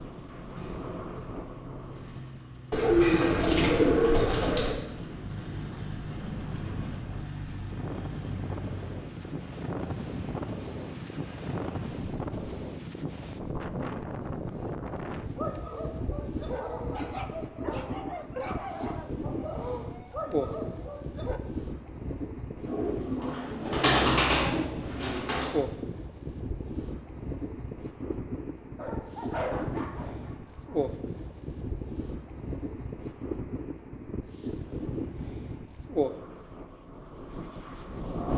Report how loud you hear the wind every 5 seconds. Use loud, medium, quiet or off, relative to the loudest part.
medium, medium, loud, loud, loud, loud, loud, loud.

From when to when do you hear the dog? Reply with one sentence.
The dog can be heard from 15.3 to 21.4 s and from 28.8 to 30.9 s.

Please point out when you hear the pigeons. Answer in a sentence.
You can hear the pigeons from 2.7 to 4.8 s and from 22.6 to 25.5 s.